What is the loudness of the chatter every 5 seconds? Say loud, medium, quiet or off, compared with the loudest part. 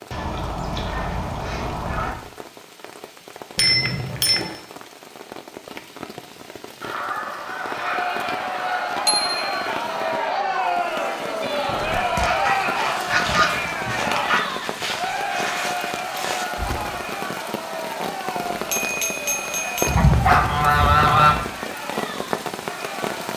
off, loud, loud, medium, medium.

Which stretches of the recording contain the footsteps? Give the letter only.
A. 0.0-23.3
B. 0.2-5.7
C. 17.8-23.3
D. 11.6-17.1
D.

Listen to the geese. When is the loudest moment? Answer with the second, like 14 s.
21 s.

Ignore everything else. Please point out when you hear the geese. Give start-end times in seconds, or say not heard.
0.1-2.1, 6.8-8.8, 12.2-14.4, 19.9-21.4.